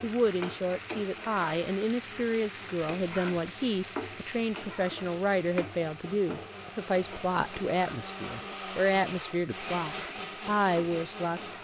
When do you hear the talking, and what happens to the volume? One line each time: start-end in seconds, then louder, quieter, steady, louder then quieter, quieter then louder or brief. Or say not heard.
0.0-11.4 steady.